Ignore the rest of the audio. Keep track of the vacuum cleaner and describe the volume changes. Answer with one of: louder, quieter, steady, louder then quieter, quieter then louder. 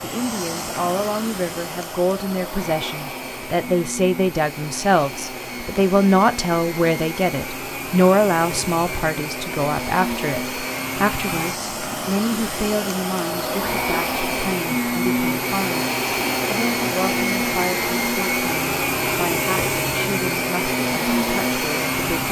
louder.